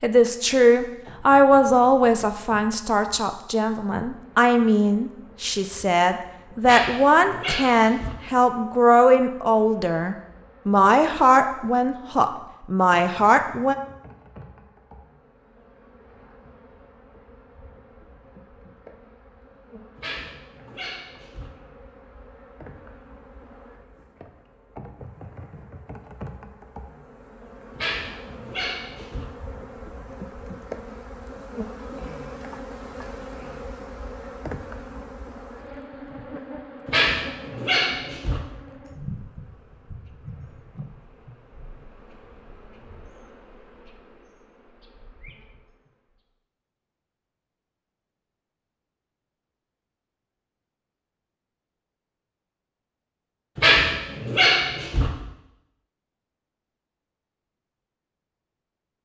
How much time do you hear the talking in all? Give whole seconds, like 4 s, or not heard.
14 s.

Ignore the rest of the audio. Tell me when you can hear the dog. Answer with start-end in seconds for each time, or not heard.
6.6-8.2, 19.9-21.5, 27.8-29.2, 36.9-38.4, 53.5-55.1.